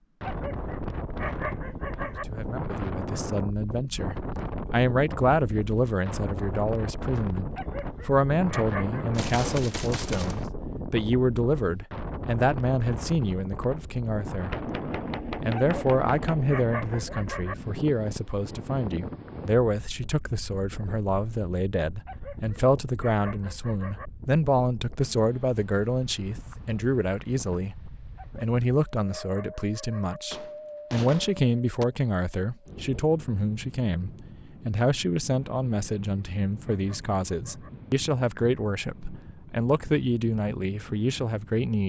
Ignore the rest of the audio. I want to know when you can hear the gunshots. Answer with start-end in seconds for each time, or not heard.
9.1-10.4, 14.5-17.1, 30.3-31.9.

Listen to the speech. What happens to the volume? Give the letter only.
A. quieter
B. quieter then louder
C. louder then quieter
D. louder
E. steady
E.